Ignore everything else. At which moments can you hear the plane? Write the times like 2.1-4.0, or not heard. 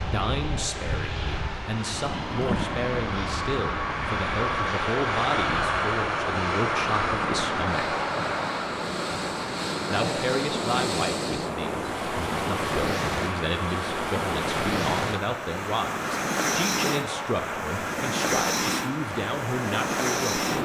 0.0-20.5.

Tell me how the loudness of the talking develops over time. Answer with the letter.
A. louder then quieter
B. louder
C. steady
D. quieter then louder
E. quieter
C.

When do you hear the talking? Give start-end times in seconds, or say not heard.
0.0-7.9, 9.9-20.4.